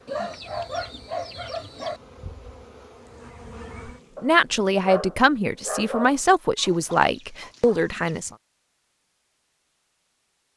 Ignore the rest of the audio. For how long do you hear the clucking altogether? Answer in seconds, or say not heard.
4 s.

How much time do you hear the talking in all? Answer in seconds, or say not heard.
4 s.